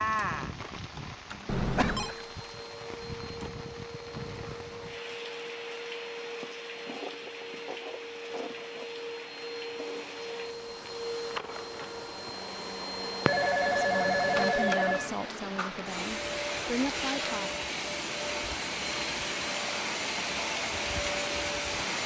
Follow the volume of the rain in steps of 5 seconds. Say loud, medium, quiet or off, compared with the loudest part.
loud, medium, loud, loud, loud.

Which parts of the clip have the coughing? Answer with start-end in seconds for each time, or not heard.
1.7-2.2.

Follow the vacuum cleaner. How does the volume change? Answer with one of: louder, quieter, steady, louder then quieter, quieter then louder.
louder.